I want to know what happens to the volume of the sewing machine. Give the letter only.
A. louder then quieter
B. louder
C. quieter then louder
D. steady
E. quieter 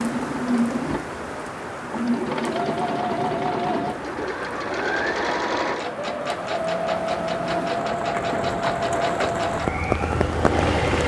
D.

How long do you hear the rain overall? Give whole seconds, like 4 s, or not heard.
11 s.